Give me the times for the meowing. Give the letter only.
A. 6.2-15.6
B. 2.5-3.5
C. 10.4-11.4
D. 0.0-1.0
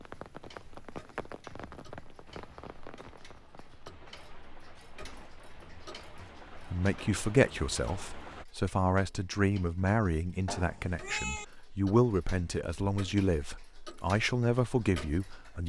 C.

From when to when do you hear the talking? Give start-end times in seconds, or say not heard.
6.2-15.6.